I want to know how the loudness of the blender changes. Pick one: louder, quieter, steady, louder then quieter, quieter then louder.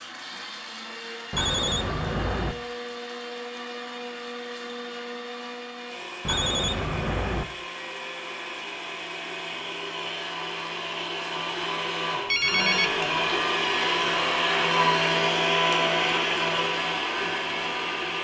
louder.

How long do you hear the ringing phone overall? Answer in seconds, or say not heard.
3 s.